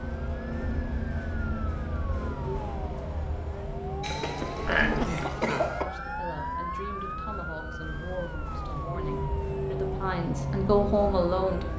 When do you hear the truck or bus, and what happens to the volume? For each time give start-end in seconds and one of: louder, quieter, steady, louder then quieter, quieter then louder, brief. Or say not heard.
0.0-11.7 quieter then louder.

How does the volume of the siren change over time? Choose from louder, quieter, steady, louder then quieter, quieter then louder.
louder then quieter.